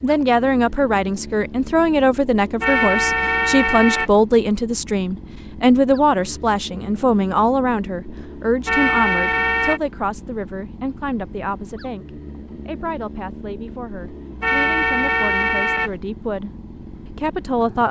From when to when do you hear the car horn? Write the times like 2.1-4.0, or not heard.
2.6-4.1, 8.7-9.8, 14.4-15.9.